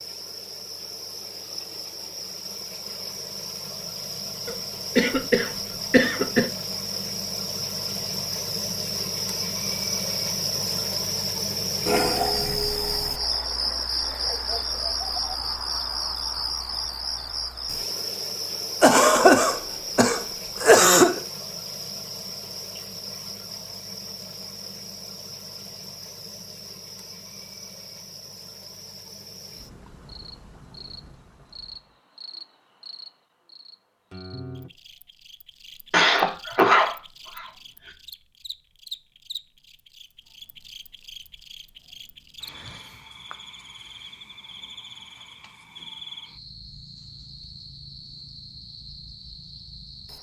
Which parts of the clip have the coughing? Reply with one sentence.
You can hear the coughing from 4.5 to 6.5 s, from 18.8 to 21.2 s and from 35.9 to 37.5 s.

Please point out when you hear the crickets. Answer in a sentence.
You can hear the crickets from 0.0 to 50.1 s.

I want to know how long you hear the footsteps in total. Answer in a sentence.
The footsteps can't be heard in this clip.